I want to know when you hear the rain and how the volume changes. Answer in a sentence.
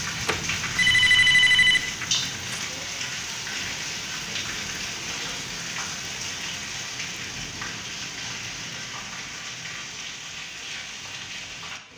The rain can be heard from 0.0 to 11.9 s, getting quieter.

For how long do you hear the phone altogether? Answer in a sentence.
You can hear the phone for 2 seconds altogether.